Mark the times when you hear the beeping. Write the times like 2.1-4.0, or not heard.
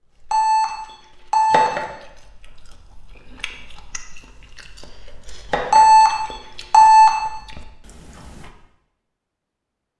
0.3-1.8, 5.7-7.2.